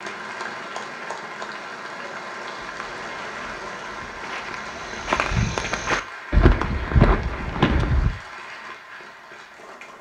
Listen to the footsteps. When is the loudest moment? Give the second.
7 s.